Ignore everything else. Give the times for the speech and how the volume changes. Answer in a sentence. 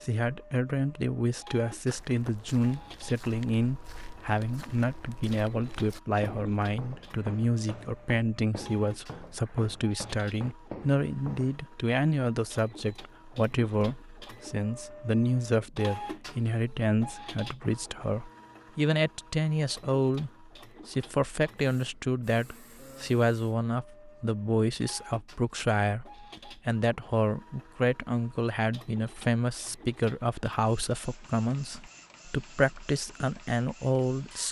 The speech can be heard from 0.0 to 34.4 s, at a steady volume.